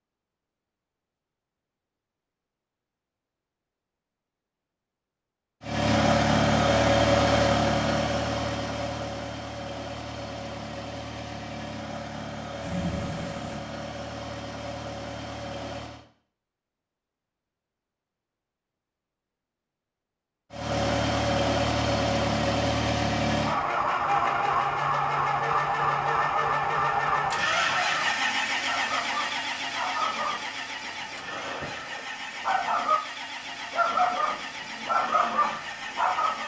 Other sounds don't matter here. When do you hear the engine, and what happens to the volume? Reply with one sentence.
You can hear the engine from 5.6 to 16.1 s, getting quieter; and from 20.5 to 36.4 s, getting quieter.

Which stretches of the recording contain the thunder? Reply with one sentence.
The thunder can be heard from 12.6 to 13.6 s.